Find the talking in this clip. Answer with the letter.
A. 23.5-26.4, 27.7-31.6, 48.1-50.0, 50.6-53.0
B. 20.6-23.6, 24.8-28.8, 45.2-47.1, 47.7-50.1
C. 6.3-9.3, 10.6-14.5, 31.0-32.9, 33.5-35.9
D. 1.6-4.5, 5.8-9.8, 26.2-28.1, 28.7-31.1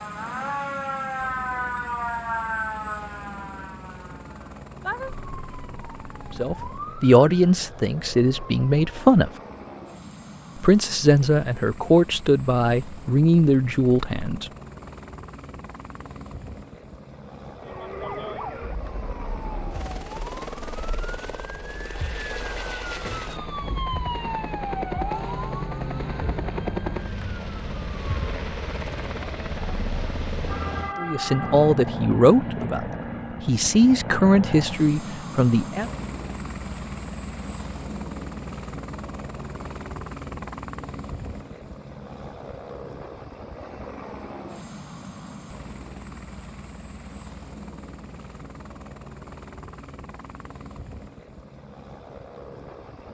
C.